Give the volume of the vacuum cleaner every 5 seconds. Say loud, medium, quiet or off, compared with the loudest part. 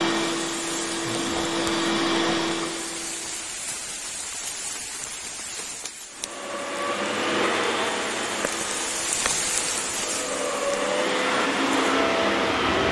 loud, medium, loud.